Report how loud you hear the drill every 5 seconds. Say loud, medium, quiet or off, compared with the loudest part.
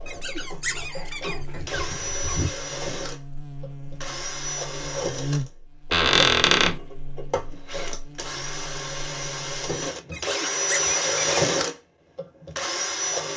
medium, medium, loud.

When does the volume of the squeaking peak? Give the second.
6 s.